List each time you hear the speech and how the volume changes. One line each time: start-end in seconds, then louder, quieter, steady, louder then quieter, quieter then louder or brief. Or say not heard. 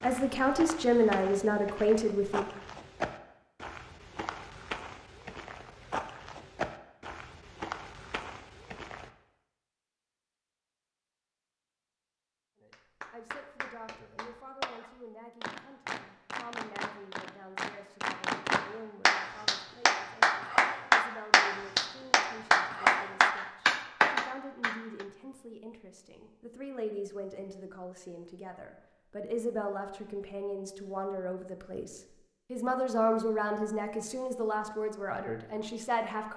0.0-2.5 brief
12.6-36.3 louder.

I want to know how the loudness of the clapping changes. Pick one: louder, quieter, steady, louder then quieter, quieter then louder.
louder.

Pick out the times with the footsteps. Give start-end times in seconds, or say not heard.
0.0-9.1.